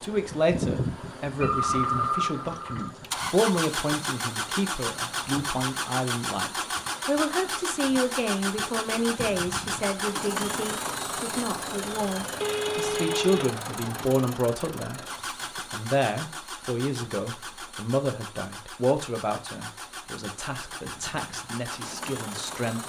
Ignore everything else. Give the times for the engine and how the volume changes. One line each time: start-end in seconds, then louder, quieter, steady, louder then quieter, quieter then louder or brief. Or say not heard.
0.0-22.8 quieter.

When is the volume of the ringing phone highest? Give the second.
2 s.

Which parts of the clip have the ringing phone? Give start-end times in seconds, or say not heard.
1.4-2.9, 12.4-13.5.